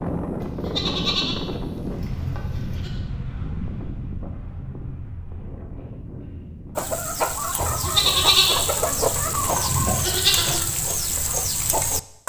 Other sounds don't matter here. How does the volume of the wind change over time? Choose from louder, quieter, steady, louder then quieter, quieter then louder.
quieter.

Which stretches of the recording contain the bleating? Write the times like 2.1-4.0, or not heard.
0.4-3.0, 7.6-10.6.